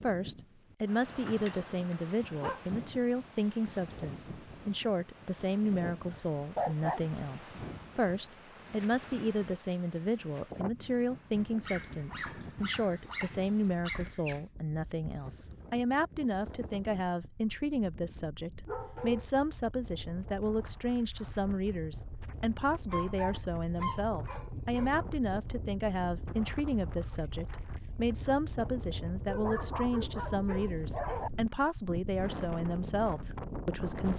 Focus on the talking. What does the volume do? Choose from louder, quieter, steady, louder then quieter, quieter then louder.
steady.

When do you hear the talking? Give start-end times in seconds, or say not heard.
0.0-34.1.